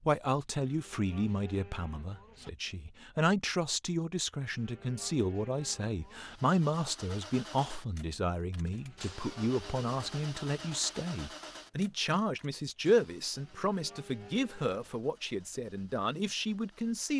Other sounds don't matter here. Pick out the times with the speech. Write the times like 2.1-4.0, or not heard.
0.0-17.1.